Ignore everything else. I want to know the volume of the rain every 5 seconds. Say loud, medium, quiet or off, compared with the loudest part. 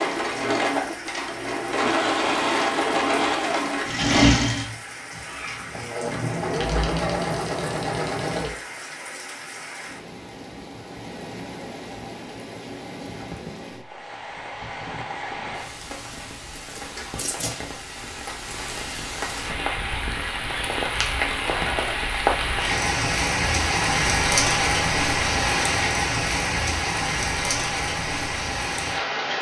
quiet, quiet, quiet, medium, loud, loud.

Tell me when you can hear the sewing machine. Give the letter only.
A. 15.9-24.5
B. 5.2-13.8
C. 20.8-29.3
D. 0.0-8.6
D.